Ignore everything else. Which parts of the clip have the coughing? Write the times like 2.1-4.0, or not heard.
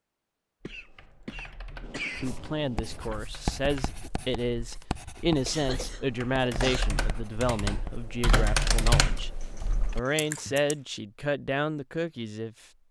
0.7-2.4, 5.5-6.8, 9.4-10.6.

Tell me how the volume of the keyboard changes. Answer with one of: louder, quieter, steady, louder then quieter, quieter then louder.
louder.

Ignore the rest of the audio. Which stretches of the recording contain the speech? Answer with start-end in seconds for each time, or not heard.
2.2-9.3, 9.9-12.6.